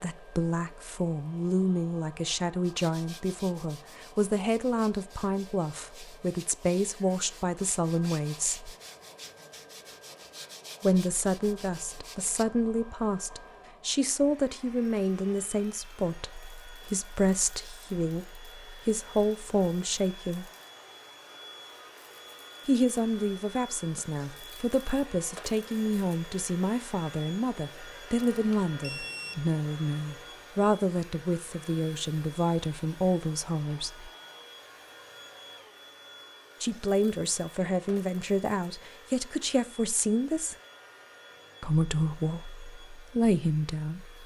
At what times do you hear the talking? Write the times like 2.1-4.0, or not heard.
0.0-8.7, 10.8-20.4, 22.6-34.1, 36.6-40.5, 41.6-44.2.